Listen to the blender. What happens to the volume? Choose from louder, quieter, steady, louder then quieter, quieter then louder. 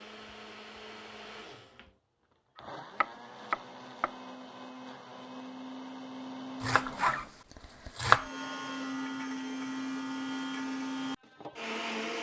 louder.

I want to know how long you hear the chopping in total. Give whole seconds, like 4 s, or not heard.
3 s.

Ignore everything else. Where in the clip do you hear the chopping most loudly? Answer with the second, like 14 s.
8 s.